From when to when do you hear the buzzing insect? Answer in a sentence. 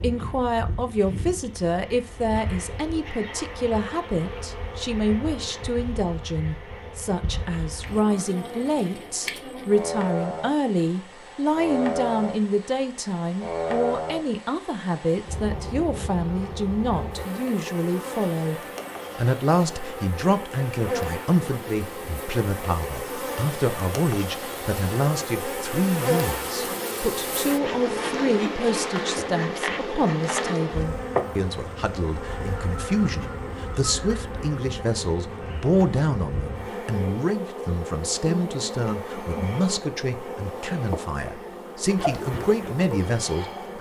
You can hear the buzzing insect from 0.0 to 43.7 s.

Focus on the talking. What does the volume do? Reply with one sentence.
The volume of the talking stays about the same.